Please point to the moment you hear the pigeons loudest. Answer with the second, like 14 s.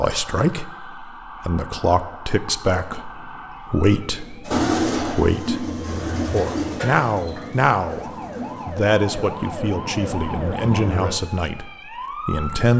5 s.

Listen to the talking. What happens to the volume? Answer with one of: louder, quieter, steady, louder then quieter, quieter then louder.
steady.